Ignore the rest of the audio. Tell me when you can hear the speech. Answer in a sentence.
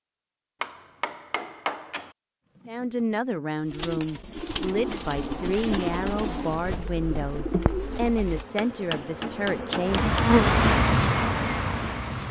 You can hear the speech from 2.6 to 10.1 s.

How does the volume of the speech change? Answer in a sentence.
The loudness of the speech stays about the same.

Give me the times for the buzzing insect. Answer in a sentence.
You can hear the buzzing insect from 4.8 to 12.2 s.